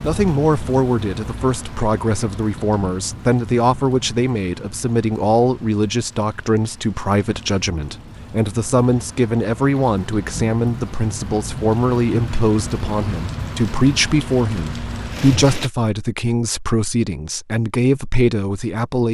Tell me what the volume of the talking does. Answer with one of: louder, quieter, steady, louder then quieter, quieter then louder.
steady.